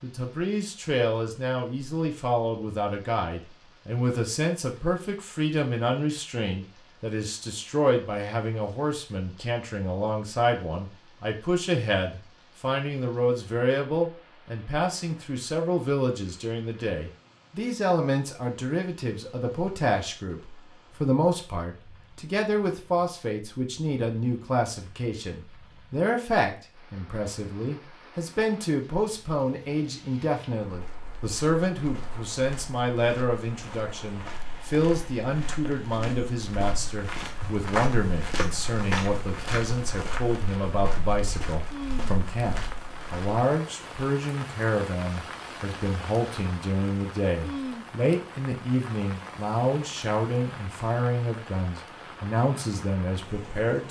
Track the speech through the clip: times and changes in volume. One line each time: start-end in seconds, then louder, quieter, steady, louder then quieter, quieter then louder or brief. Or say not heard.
0.0-53.8 steady.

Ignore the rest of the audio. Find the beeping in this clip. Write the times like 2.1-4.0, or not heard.
not heard.